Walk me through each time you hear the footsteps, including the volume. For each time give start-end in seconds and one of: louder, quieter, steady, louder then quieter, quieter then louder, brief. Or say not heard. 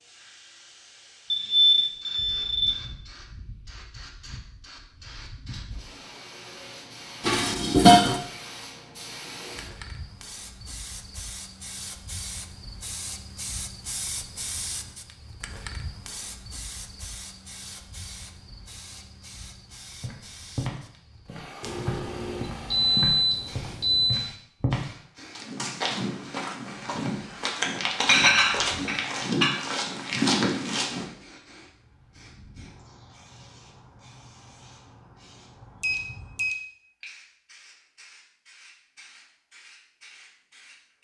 20.0-31.1 louder.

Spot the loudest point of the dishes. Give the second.
8 s.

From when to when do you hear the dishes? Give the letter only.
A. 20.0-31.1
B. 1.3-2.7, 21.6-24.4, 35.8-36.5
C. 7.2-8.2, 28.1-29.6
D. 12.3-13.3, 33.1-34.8
C.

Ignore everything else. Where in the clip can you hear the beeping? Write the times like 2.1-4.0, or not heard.
1.3-2.7, 21.6-24.4, 35.8-36.5.